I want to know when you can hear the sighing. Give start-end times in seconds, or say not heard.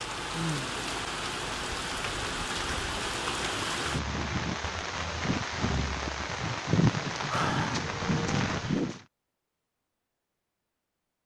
0.3-0.8, 7.2-7.8.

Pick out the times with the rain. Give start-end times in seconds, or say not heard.
0.0-9.0.